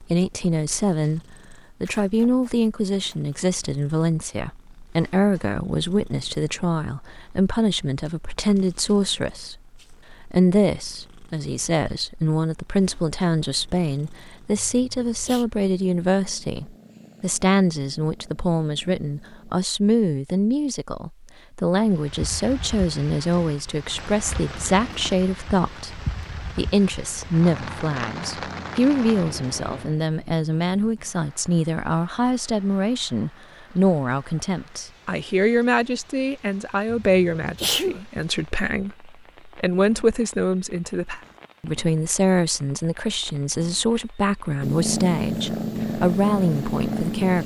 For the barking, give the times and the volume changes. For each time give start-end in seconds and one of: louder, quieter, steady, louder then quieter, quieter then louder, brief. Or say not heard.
not heard.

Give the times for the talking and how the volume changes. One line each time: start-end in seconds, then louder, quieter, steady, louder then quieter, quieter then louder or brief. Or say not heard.
0.0-1.2 brief
1.8-9.6 steady
10.2-47.4 steady.